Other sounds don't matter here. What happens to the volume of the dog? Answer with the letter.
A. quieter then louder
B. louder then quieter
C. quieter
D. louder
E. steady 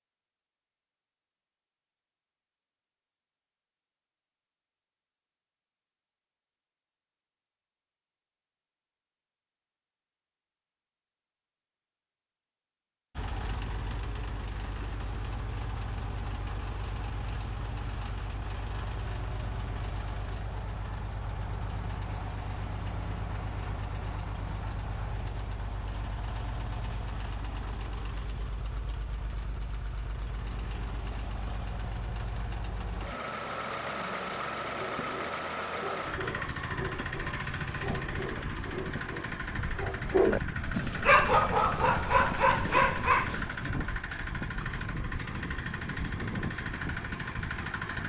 D.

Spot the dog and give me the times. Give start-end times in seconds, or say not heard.
34.6-43.7.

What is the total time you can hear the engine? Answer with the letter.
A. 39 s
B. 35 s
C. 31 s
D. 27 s
B.